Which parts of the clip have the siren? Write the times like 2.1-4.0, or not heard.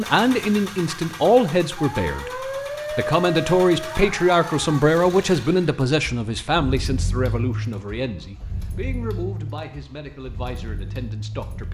1.8-4.8.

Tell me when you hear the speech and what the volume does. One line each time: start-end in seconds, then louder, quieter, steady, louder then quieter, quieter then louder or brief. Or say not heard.
0.0-11.6 quieter.